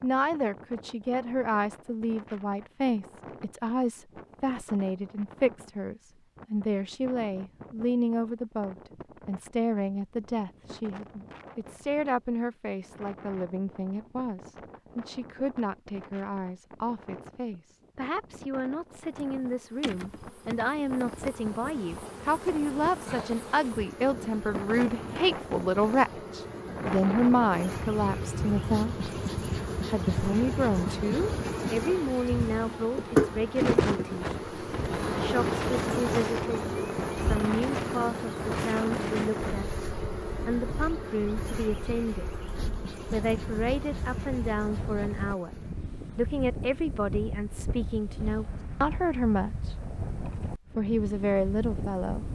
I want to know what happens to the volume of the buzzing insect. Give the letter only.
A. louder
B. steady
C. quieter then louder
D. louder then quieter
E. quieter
D.